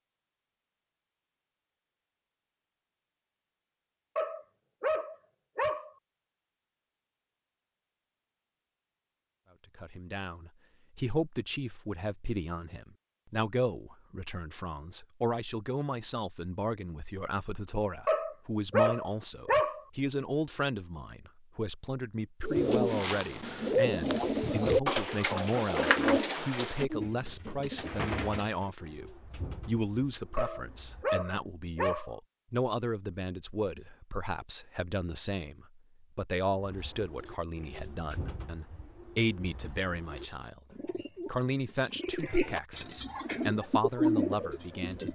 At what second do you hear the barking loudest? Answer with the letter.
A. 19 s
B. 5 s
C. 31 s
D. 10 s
A.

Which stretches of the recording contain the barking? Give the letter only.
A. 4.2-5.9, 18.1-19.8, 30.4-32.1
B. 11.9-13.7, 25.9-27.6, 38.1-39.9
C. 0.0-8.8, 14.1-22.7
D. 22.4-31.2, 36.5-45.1
A.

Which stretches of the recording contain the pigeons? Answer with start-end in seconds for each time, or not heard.
22.4-31.2, 36.5-45.1.